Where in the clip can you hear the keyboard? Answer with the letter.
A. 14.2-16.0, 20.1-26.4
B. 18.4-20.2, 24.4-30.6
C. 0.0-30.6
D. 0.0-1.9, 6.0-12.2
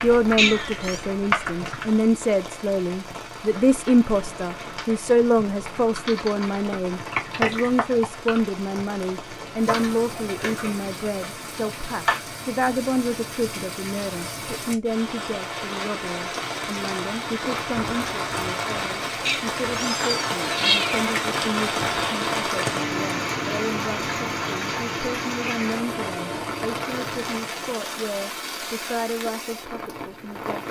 D.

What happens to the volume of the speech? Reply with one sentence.
The volume of the speech goes down.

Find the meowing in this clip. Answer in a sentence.
The meowing can be heard from 0.3 to 1.0 s and from 19.2 to 21.1 s.